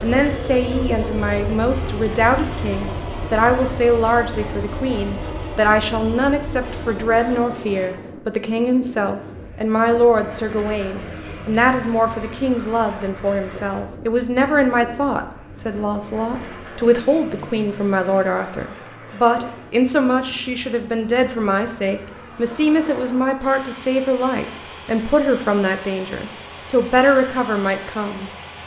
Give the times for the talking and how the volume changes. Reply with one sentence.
The talking can be heard from 0.0 to 28.6 s, at a steady volume.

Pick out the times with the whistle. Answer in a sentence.
You can't hear the whistle here.